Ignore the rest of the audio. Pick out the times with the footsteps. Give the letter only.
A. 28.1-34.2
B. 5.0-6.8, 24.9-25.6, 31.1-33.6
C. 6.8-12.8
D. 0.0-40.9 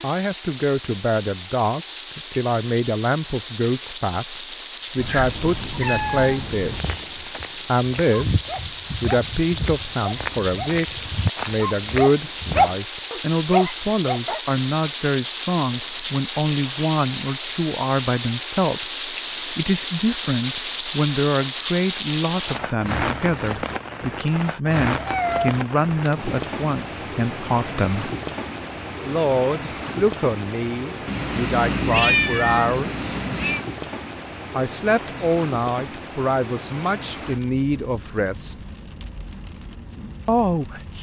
C.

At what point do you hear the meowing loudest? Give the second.
32 s.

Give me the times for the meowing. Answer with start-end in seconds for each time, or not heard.
5.0-6.8, 24.9-25.6, 31.1-33.6.